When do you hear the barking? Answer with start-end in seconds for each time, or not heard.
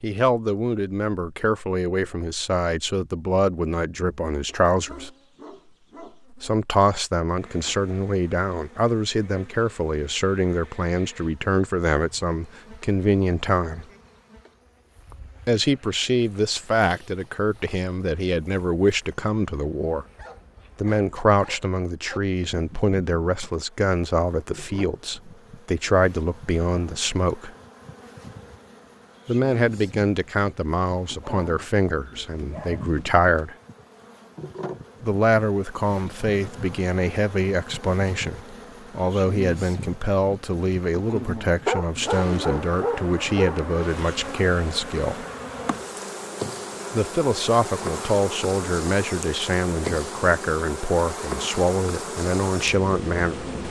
4.5-6.2, 20.1-22.2, 31.2-33.1, 41.6-43.6.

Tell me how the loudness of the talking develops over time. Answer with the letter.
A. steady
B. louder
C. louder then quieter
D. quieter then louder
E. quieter
A.